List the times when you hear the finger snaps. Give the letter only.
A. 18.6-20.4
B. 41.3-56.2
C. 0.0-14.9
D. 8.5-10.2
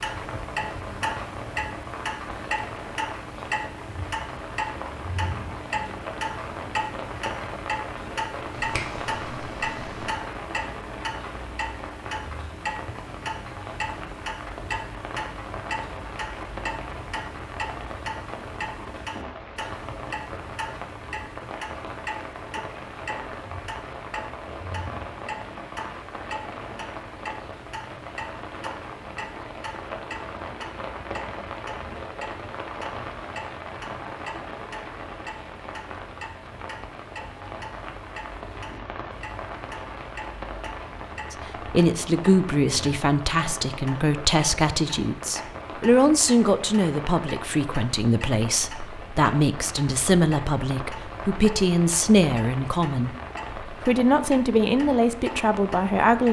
D.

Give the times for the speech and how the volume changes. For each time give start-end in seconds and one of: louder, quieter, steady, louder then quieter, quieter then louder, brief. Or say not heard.
41.3-56.2 steady.